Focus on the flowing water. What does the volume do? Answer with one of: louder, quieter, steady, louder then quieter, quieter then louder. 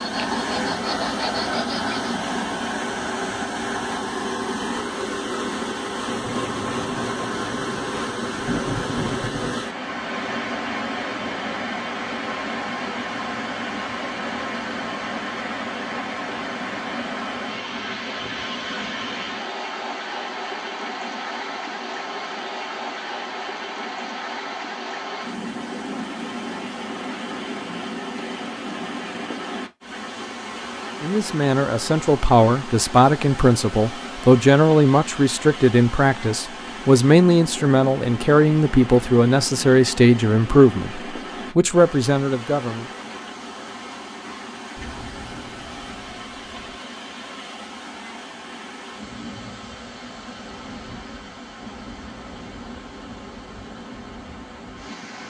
quieter.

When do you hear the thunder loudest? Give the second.
9 s.